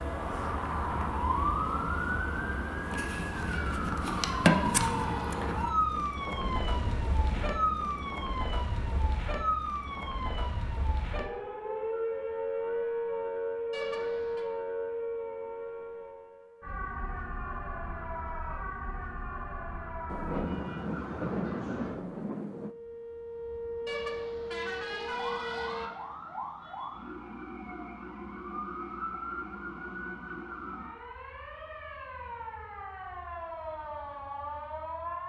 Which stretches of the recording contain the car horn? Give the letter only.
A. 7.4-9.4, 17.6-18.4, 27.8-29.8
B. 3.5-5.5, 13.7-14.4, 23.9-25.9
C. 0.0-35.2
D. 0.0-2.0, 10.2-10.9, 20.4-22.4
B.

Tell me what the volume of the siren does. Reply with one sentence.
The volume of the siren goes down.